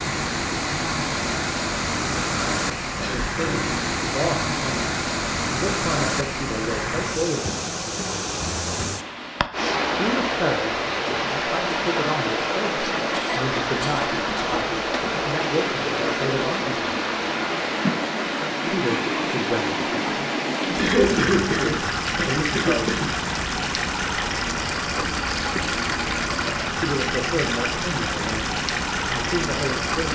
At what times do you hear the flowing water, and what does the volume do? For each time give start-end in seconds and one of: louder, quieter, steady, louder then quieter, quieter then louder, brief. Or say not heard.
0.0-30.0 steady.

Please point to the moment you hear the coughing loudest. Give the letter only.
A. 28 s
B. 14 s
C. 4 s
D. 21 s
D.